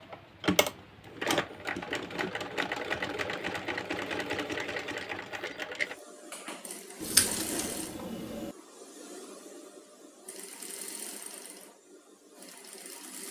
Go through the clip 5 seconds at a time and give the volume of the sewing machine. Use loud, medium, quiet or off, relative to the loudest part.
loud, medium, quiet.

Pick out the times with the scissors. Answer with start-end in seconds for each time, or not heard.
7.0-8.6.